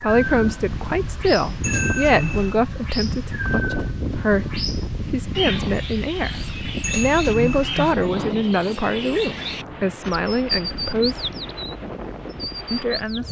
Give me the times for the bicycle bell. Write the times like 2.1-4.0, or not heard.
1.6-2.6, 6.8-8.0.